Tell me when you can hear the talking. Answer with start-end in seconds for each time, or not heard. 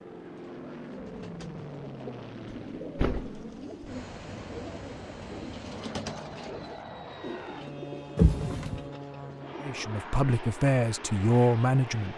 9.6-12.1.